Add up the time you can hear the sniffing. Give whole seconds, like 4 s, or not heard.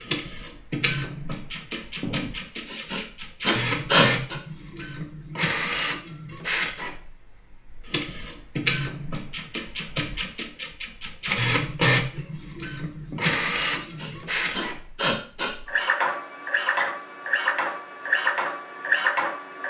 5 s.